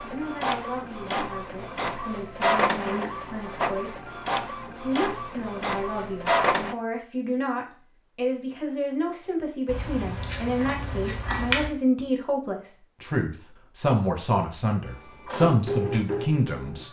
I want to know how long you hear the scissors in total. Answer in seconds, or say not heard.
2 s.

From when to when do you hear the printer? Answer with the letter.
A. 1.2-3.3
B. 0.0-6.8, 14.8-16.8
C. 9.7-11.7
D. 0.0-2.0
B.